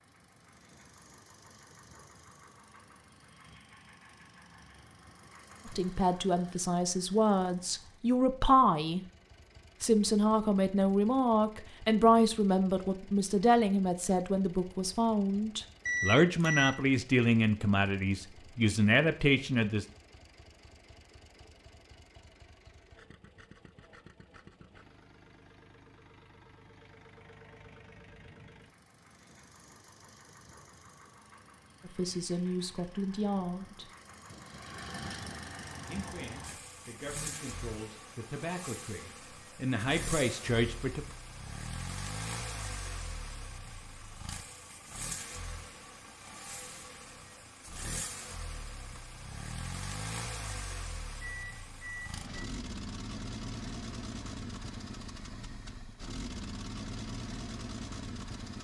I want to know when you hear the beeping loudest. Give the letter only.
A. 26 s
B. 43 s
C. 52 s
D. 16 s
D.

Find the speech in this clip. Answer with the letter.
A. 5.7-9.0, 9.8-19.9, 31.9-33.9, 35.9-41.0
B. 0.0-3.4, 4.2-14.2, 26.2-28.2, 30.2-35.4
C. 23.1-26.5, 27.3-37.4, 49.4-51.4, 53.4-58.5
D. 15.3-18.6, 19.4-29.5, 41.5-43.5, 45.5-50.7
A.